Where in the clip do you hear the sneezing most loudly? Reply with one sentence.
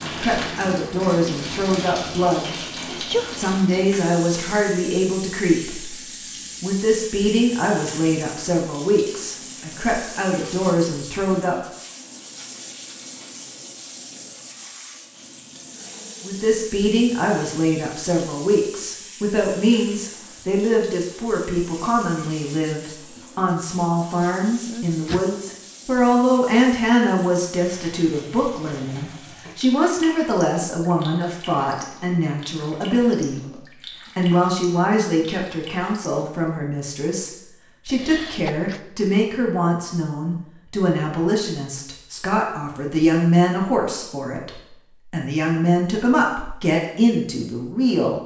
The volume of the sneezing peaks at 3 seconds.